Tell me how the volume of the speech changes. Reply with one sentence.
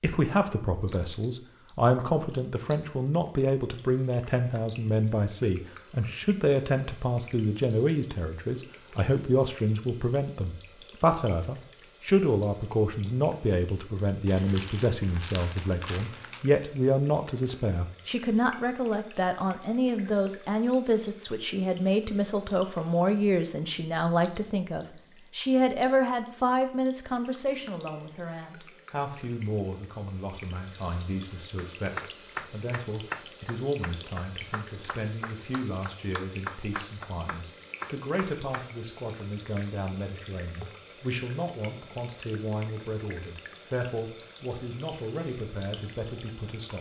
The loudness of the speech goes down.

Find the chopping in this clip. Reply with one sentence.
The chopping can be heard from 31.6 to 38.6 s.